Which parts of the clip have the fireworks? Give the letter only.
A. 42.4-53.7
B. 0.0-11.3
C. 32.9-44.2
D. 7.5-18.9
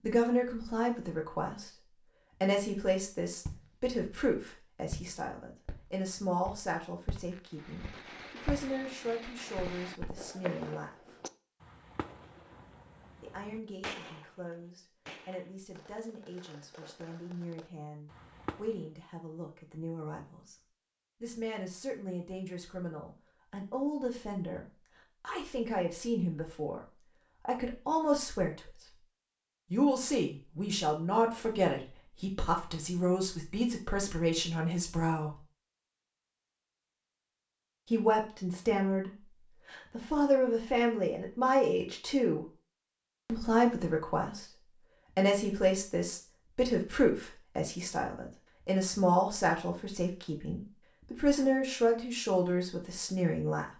D.